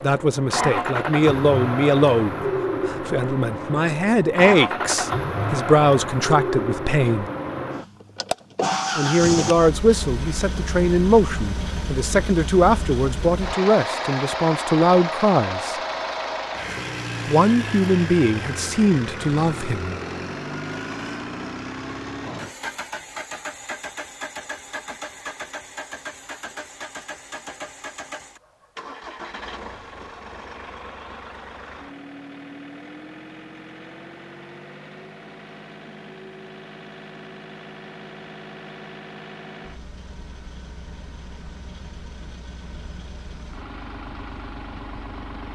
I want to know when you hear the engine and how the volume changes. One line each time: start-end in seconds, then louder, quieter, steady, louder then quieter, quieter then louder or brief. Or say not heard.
0.0-45.4 quieter.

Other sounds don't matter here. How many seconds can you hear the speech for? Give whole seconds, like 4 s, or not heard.
17 s.